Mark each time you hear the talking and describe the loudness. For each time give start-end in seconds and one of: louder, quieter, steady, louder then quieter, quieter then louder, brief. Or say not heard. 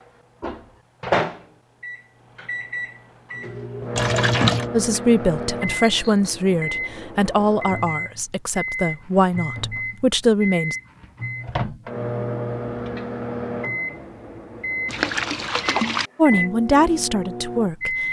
4.7-10.8 steady
16.1-18.0 brief.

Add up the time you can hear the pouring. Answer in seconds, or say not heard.
2 s.